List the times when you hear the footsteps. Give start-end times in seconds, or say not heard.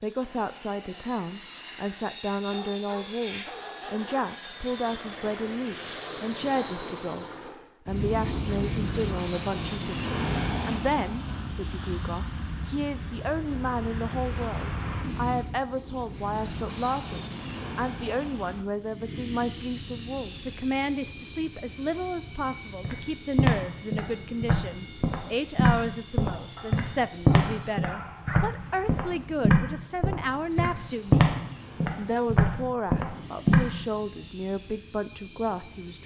22.8-33.6.